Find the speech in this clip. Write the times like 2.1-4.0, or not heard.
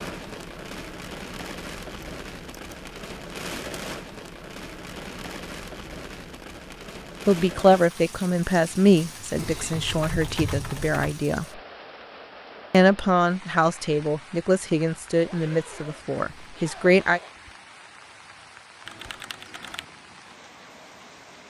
7.2-11.4, 12.7-17.2.